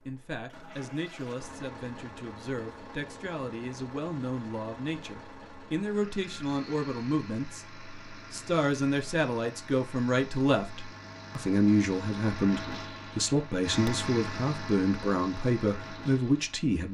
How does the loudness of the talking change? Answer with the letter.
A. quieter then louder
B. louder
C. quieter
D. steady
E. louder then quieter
B.